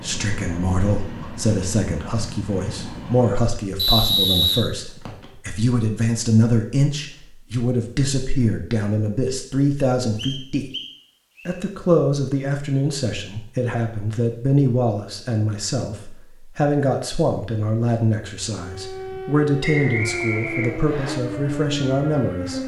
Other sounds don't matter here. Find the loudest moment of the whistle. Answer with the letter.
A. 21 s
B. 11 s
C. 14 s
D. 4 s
D.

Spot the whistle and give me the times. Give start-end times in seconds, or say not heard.
3.8-5.2, 10.2-11.6, 19.6-21.1.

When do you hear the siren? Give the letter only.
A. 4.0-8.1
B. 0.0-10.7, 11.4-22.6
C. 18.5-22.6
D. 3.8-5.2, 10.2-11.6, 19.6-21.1
C.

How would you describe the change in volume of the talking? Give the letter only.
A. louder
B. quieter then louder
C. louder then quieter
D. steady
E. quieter
D.